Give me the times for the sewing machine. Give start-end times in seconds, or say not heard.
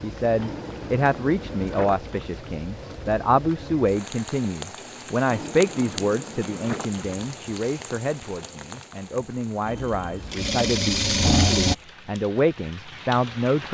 9.8-11.8.